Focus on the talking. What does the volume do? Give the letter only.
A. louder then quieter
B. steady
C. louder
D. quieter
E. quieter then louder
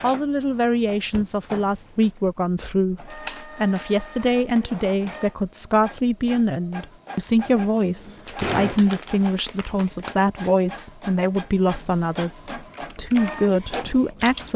B.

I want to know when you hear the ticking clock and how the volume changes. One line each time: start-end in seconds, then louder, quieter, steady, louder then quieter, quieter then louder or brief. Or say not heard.
not heard.